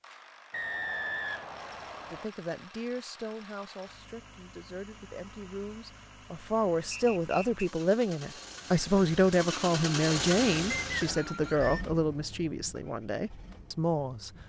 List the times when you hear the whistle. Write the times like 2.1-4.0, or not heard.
0.5-2.3, 6.9-7.5, 10.8-11.8.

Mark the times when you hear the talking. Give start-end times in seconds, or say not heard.
2.1-14.3.